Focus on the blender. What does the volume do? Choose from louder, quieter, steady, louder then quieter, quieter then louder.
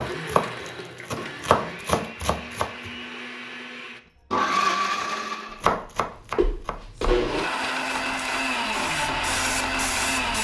louder.